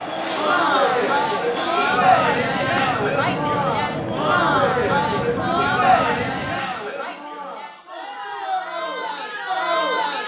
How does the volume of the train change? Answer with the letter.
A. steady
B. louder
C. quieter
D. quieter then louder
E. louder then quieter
A.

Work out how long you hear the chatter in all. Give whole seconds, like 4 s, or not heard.
10 s.